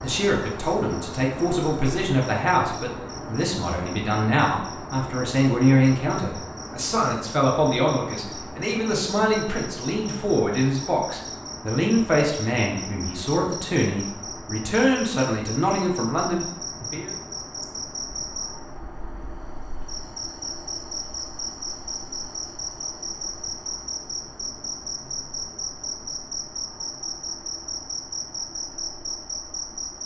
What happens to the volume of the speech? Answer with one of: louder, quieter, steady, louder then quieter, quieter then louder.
steady.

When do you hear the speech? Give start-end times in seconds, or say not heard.
0.0-17.1.